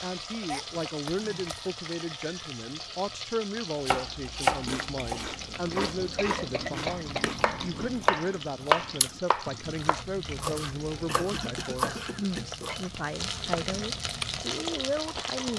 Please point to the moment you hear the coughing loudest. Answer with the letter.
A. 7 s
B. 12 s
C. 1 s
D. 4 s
A.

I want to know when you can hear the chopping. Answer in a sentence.
You can hear the chopping from 3.9 to 12.9 s.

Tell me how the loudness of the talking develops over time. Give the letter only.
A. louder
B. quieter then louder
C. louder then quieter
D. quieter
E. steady
E.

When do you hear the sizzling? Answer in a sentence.
The sizzling can be heard from 0.0 to 15.5 s.